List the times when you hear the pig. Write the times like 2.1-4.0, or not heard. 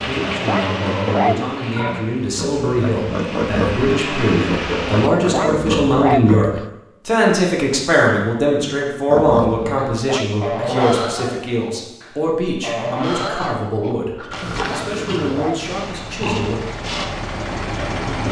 0.0-6.4, 9.1-18.2.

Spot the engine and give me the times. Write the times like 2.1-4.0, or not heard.
0.0-5.1, 14.2-18.2.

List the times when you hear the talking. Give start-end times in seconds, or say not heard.
0.0-16.6.